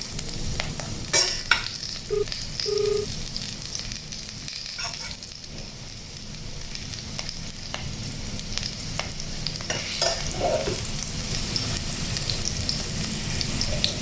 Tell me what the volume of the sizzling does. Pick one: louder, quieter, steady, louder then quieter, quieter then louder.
quieter then louder.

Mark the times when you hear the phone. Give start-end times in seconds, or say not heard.
2.1-3.0.